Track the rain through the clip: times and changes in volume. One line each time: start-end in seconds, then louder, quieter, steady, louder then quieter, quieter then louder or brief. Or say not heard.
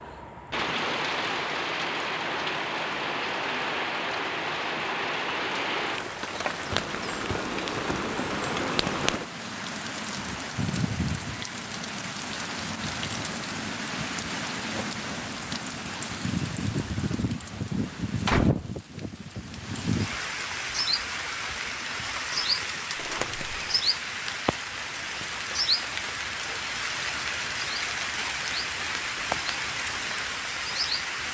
0.0-31.3 steady.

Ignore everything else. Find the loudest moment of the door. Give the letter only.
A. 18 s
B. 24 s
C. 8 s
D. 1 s
A.